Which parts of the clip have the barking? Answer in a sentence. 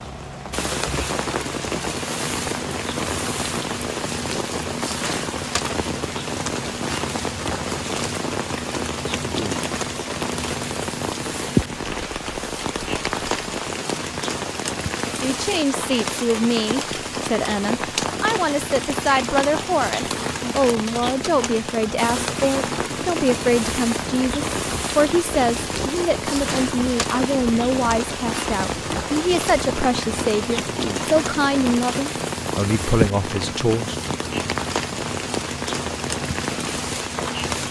You can't hear the barking here.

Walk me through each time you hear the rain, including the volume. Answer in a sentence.
The rain can be heard from 0.0 to 37.6 s, at a steady volume.